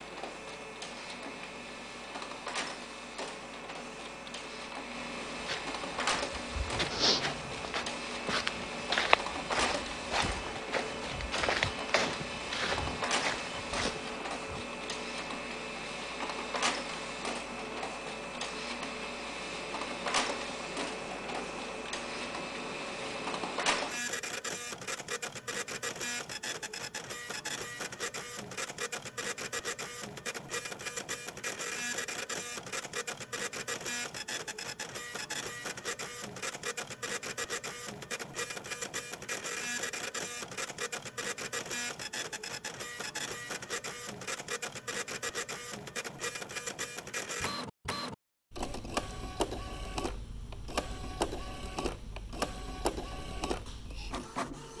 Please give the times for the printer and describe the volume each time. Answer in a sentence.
You can hear the printer from 0.0 to 54.7 s, at a steady volume.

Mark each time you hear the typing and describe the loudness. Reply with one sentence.
You can't hear the typing here.